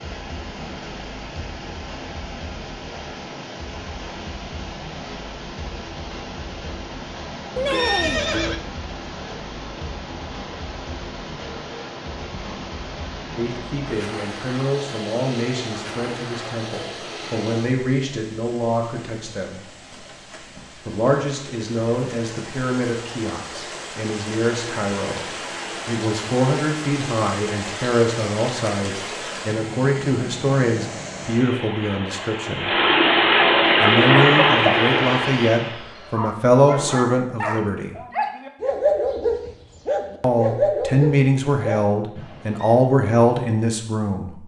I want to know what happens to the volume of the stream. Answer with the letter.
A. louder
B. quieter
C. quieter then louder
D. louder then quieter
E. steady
A.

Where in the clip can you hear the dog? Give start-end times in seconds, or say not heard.
33.6-42.8.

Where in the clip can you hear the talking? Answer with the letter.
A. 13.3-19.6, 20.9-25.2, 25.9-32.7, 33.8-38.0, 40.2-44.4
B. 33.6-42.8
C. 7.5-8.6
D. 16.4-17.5
A.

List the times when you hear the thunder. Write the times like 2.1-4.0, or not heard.
not heard.